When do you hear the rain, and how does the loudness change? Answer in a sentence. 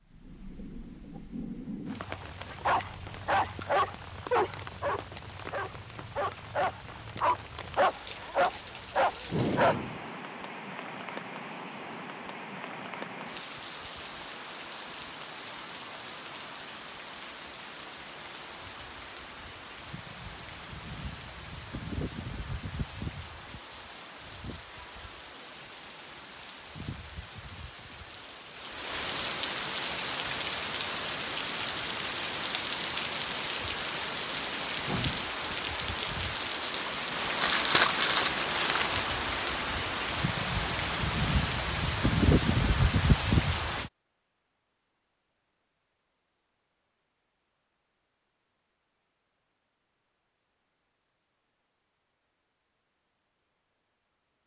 The rain can be heard from 0.0 to 43.9 s, getting louder.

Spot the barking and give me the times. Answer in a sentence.
The barking can be heard from 2.6 to 10.0 s.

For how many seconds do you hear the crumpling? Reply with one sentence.
The crumpling can be heard for 2 seconds in total.